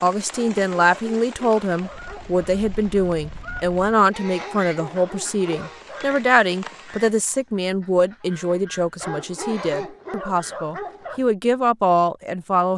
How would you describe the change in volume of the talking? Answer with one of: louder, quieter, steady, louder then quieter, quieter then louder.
steady.